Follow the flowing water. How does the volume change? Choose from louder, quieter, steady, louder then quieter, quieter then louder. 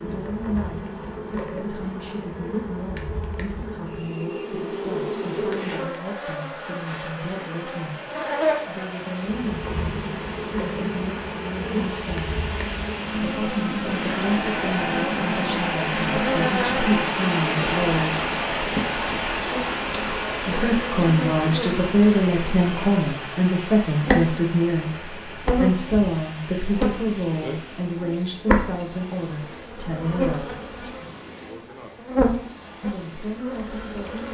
louder then quieter.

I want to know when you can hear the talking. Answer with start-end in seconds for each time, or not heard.
0.0-8.1, 8.7-12.5, 13.2-18.2, 20.4-30.6, 32.8-34.2.